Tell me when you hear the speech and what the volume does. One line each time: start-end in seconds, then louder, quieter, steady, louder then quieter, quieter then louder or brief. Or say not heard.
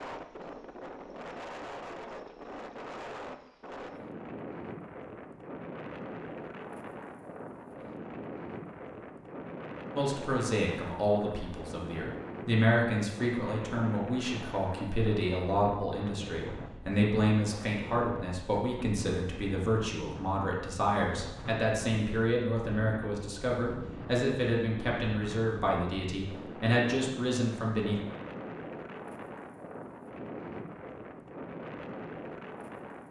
9.9-28.0 steady.